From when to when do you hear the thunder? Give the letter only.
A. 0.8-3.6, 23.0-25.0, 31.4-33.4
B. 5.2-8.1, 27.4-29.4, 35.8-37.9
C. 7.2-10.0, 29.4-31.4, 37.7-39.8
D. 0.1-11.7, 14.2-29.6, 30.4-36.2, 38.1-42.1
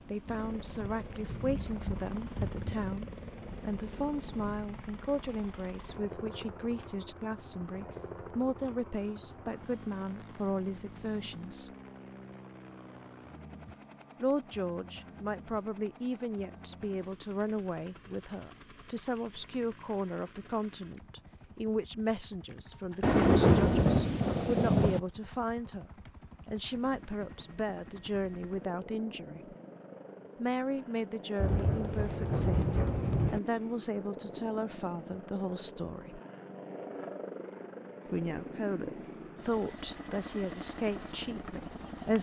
A.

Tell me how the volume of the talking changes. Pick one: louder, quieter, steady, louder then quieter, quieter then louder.
steady.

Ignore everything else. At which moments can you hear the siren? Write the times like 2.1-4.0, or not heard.
not heard.